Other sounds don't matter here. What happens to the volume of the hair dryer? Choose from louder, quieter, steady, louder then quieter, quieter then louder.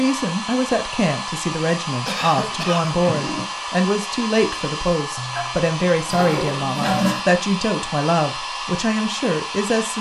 steady.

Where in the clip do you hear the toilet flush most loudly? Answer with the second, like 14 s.
7 s.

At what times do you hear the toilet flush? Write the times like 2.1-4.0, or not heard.
2.5-3.5, 5.2-7.2.